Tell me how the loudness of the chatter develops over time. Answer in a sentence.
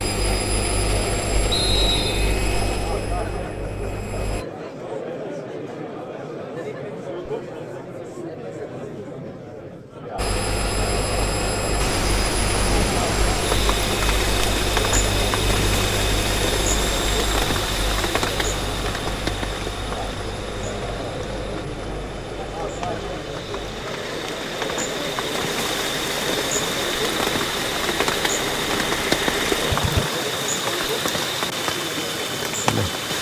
The volume of the chatter stays about the same.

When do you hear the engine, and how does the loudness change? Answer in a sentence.
You can hear the engine from 0.0 to 4.5 s, getting quieter; and from 10.2 to 30.1 s, getting quieter then louder.